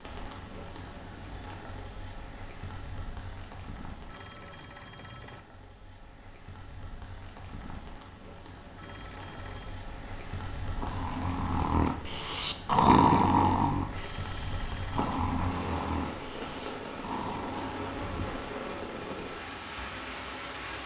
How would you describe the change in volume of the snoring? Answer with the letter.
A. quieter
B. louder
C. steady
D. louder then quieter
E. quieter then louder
D.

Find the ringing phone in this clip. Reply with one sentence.
The ringing phone can be heard from 4.0 to 5.5 s, from 8.8 to 9.8 s and from 13.9 to 15.3 s.